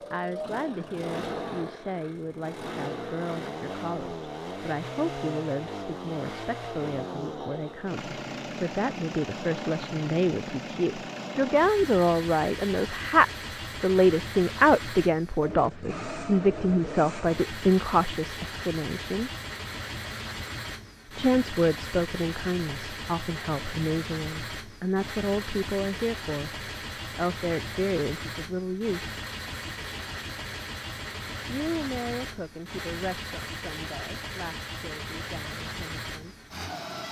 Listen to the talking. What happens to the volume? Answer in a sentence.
The volume of the talking goes up, then down.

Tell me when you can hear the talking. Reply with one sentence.
The talking can be heard from 0.1 to 19.3 s, from 21.1 to 29.1 s and from 31.4 to 36.5 s.